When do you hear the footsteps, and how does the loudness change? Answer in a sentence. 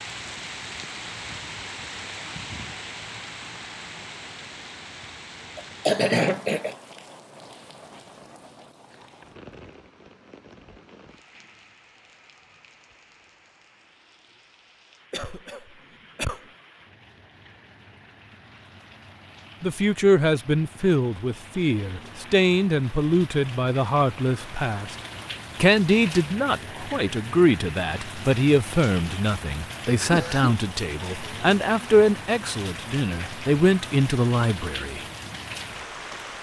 You can't hear the footsteps here.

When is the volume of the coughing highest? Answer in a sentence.
The loudest moment of the coughing is at 6 seconds.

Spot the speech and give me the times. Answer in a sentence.
The speech can be heard from 19.6 to 24.9 s and from 25.6 to 35.0 s.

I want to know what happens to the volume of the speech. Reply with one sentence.
The volume of the speech stays about the same.